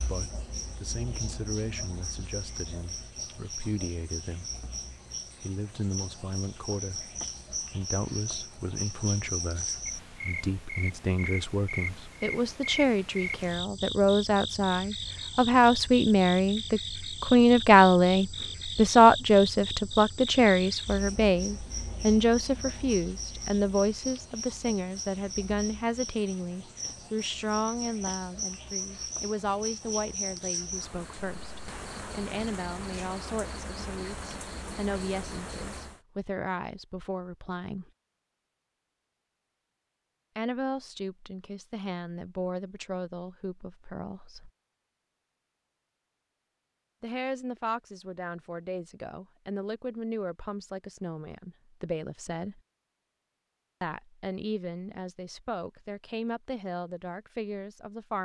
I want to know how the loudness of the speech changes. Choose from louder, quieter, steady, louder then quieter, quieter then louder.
louder then quieter.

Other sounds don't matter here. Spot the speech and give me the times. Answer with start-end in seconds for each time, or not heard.
0.0-4.5, 5.4-37.9, 40.4-44.5, 47.0-52.6, 53.8-58.2.